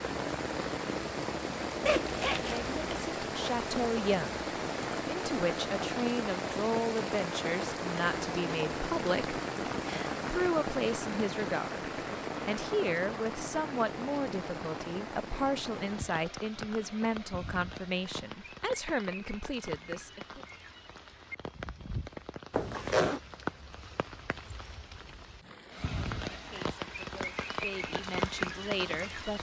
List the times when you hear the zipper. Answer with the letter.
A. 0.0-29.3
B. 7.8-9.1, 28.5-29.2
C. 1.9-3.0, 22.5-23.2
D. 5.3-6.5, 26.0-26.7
C.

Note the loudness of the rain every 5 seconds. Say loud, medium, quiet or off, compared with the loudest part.
loud, loud, loud, medium, medium, loud.